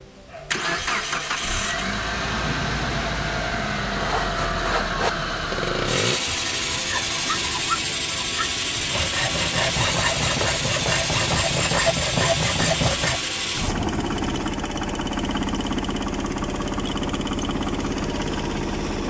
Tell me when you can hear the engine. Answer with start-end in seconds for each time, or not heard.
0.0-19.0.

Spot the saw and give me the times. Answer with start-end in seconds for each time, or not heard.
4.0-13.2.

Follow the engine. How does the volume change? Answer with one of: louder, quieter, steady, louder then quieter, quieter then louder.
steady.